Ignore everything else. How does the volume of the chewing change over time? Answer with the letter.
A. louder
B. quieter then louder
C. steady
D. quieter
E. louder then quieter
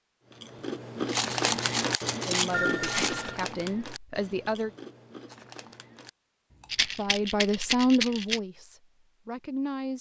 D.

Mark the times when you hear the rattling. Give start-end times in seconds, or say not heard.
1.1-3.1, 6.7-8.4.